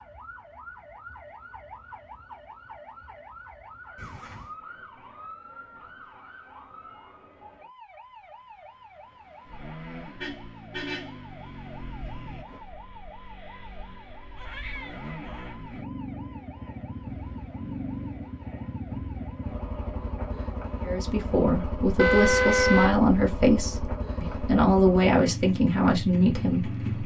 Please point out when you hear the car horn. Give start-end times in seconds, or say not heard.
4.0-4.5, 10.2-11.2, 21.9-22.9.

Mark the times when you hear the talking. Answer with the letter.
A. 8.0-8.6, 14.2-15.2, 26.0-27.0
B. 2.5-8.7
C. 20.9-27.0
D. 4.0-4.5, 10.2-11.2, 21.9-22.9
C.